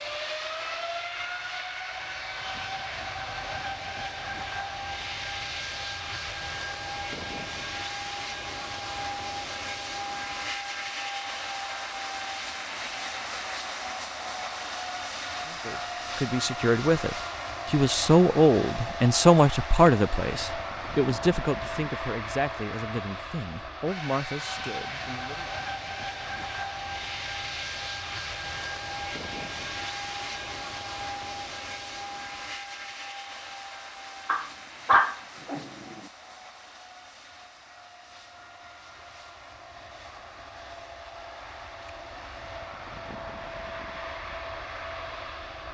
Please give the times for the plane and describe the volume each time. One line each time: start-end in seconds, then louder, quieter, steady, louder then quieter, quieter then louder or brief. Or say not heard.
0.0-45.7 quieter.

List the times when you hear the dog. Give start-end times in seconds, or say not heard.
34.2-35.6.